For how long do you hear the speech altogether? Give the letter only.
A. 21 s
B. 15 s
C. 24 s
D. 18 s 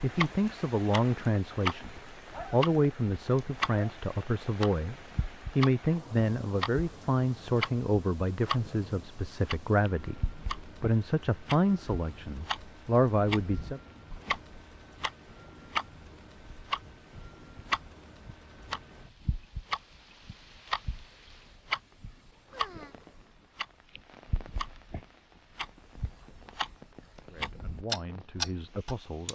B.